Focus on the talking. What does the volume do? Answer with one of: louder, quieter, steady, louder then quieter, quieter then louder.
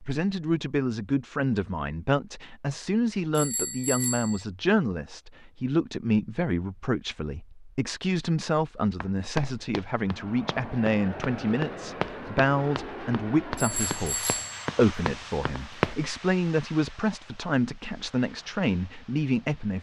steady.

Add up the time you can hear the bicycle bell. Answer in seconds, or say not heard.
2 s.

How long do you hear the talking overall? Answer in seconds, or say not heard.
20 s.